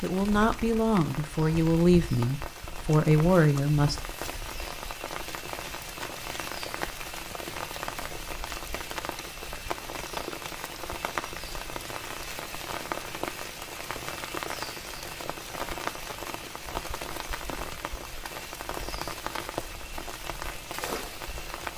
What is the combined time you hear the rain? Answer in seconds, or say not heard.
22 s.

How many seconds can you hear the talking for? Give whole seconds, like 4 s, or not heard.
4 s.